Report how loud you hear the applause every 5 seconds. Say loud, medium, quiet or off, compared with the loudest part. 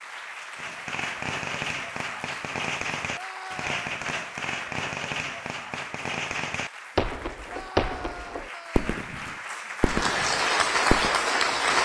quiet, quiet, loud.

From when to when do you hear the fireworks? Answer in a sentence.
The fireworks can be heard from 0.6 to 11.1 s.